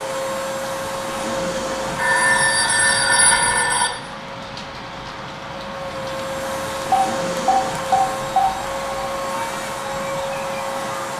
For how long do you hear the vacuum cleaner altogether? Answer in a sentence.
You can hear the vacuum cleaner for 11 seconds altogether.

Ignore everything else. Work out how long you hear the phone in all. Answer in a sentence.
You can hear the phone for 4 seconds altogether.